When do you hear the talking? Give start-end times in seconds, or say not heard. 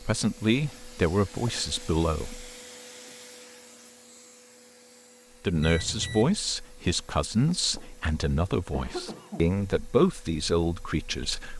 0.0-2.5, 5.4-11.5.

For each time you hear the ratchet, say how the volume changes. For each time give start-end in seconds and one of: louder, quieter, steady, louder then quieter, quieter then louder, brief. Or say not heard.
not heard.